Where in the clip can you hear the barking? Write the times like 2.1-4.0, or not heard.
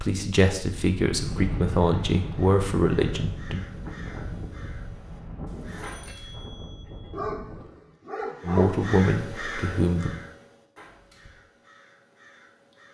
7.1-8.9.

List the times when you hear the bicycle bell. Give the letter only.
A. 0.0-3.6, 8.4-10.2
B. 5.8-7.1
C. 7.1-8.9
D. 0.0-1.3
B.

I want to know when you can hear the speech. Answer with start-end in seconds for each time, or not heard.
0.0-3.6, 8.4-10.2.